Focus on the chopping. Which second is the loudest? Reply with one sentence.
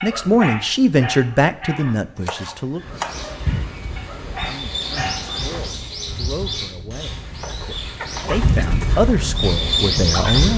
The volume of the chopping peaks at 3 seconds.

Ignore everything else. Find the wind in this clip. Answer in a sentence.
The wind can be heard from 2.8 to 10.5 s.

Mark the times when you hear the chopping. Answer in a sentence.
The chopping can be heard from 2.1 to 3.4 s and from 7.3 to 8.4 s.